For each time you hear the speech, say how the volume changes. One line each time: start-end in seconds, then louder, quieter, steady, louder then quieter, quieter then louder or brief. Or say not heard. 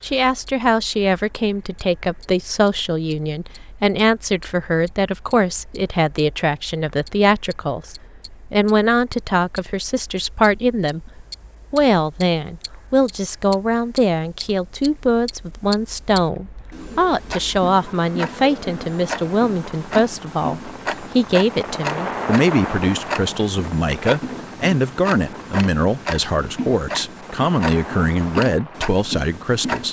0.0-29.8 steady.